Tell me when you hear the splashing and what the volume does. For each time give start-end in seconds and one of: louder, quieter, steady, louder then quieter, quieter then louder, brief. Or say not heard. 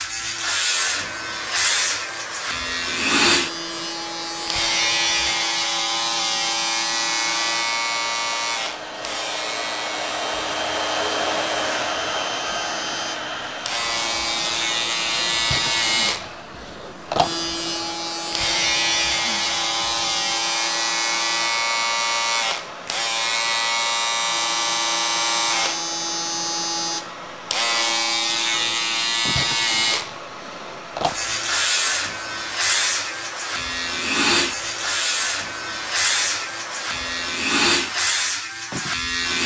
not heard.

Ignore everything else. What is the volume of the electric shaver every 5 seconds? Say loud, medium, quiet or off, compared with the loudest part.
loud, loud, medium, loud, loud, loud, loud, loud.